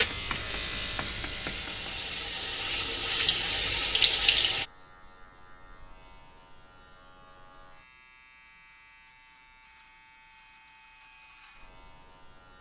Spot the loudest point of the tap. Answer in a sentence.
The loudest moment of the tap is at 4 seconds.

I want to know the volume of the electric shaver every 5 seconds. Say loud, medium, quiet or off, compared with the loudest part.
loud, quiet, quiet.